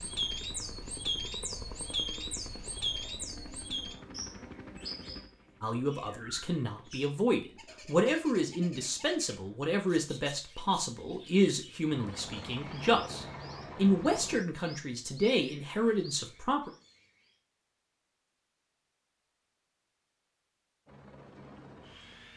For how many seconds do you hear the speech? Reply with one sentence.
The speech can be heard for 11 seconds in total.